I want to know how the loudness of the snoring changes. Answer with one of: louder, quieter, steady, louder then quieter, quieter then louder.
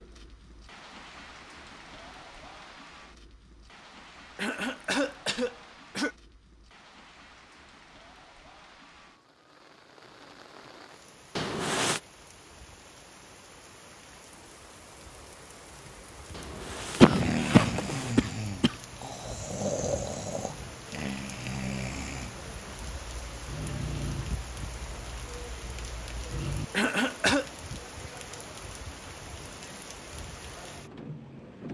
quieter.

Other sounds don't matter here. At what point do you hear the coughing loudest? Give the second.
17 s.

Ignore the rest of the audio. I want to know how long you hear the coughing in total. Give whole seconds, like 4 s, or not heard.
4 s.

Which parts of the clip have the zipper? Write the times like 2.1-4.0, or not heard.
11.3-12.0, 16.3-18.1.